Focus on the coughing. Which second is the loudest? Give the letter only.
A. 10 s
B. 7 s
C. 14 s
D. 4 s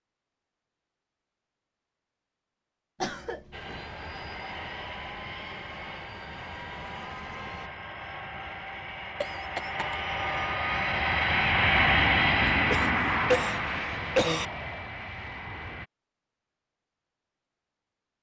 C.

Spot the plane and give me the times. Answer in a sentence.
You can hear the plane from 3.5 to 15.9 s.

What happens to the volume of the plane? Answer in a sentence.
The loudness of the plane goes up, then down.